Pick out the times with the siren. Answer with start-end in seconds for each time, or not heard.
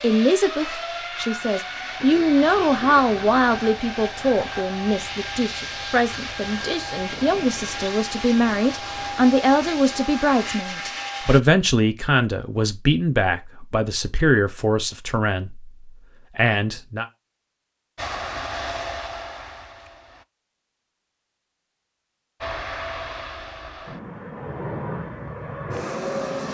not heard.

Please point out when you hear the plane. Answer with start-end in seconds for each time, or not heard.
0.0-11.4, 17.9-20.2, 22.4-26.5.